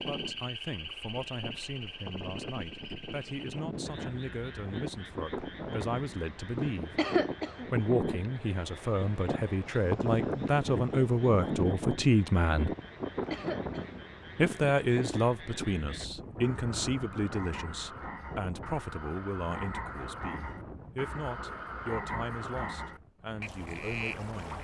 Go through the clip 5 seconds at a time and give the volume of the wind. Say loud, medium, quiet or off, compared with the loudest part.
medium, loud, loud, medium, quiet.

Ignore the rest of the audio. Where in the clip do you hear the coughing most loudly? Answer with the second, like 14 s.
7 s.